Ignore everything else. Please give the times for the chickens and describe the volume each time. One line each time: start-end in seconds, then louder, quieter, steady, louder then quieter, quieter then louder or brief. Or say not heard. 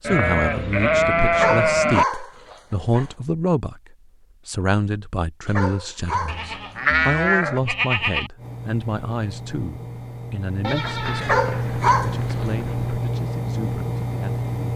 not heard.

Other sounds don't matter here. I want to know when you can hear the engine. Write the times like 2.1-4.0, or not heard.
8.3-14.7.